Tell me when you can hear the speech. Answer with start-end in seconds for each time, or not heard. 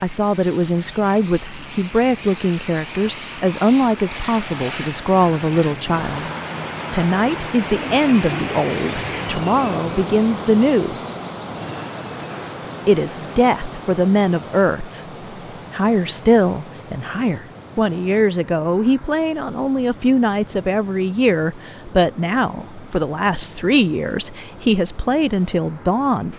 0.0-6.2, 6.9-10.9, 12.8-15.0, 15.7-26.3.